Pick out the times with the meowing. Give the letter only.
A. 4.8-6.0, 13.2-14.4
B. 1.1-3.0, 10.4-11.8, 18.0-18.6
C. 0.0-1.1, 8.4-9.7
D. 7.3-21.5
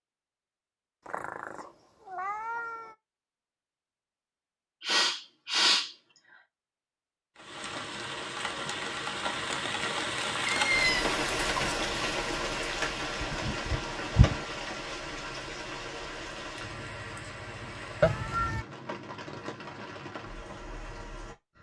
B.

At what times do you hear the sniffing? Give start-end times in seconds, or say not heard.
4.8-6.0, 13.2-14.4.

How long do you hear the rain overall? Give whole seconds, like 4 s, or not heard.
14 s.